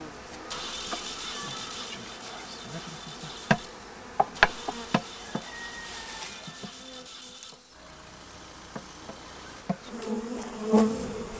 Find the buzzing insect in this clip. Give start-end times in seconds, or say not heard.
0.0-11.3.